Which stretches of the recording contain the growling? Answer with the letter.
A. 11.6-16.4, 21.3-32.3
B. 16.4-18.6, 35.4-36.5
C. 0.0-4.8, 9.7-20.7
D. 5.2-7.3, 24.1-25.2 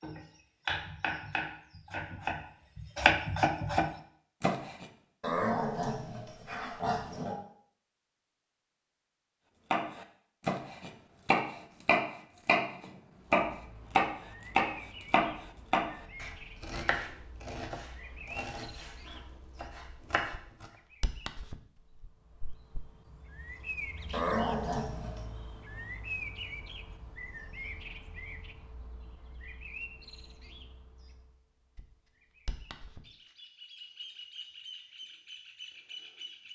D.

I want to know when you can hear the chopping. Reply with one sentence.
You can hear the chopping from 0.0 to 4.8 s and from 9.7 to 20.7 s.